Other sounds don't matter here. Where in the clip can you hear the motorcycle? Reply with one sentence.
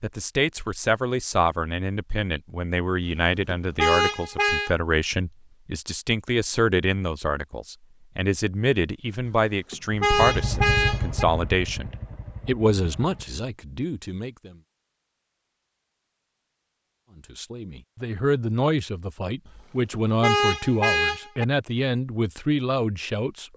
The motorcycle can be heard from 9.8 to 13.5 s.